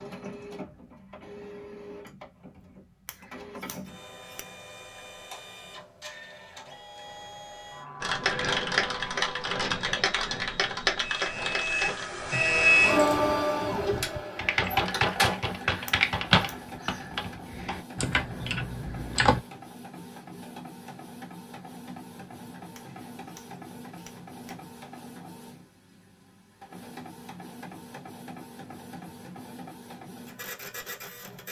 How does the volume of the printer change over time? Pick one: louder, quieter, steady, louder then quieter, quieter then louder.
louder then quieter.